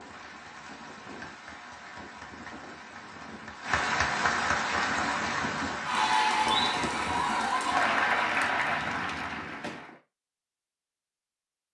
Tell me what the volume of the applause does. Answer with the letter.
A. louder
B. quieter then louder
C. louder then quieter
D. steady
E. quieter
A.